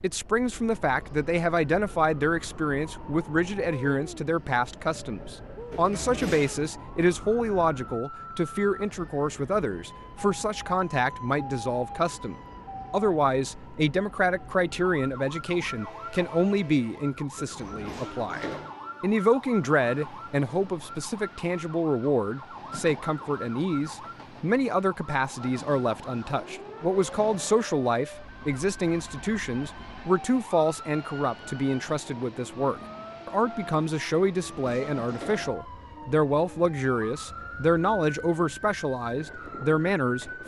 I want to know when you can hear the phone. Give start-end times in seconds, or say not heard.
not heard.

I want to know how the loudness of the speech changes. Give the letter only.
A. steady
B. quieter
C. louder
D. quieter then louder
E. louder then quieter
A.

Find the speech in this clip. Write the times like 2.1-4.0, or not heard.
0.0-40.4.